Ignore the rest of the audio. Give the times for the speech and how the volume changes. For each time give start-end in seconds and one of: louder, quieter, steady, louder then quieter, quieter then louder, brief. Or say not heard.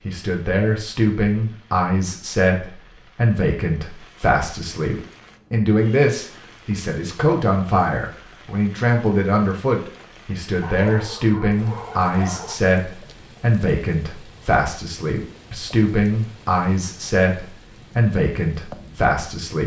0.1-19.6 steady.